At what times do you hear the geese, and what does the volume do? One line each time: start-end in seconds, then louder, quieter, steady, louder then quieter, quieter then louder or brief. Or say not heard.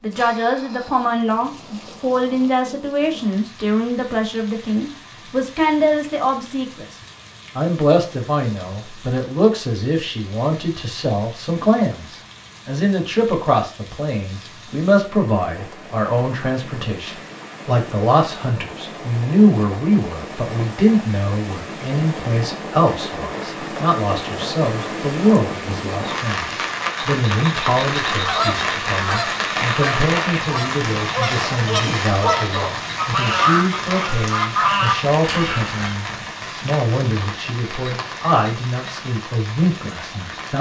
28.1-36.0 louder.